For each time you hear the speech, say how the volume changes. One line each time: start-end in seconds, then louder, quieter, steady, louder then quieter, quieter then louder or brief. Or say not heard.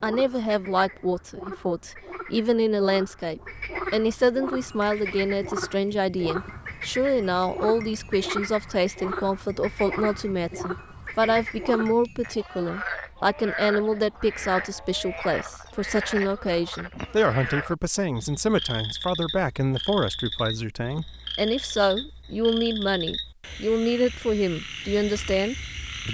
0.0-26.1 steady.